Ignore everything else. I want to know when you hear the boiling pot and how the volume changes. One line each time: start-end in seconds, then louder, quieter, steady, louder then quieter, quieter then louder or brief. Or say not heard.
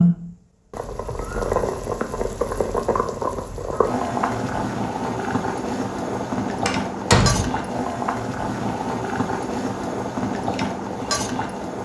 0.0-11.8 steady.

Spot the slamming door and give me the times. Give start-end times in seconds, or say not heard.
6.7-7.5.